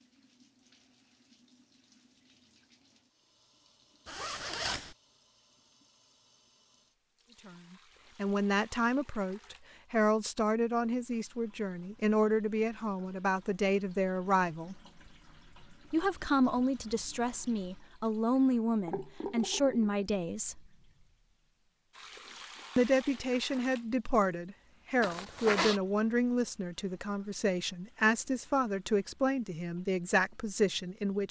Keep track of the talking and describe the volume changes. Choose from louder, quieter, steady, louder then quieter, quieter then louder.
steady.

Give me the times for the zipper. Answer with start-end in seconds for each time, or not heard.
4.0-5.0, 25.0-25.8.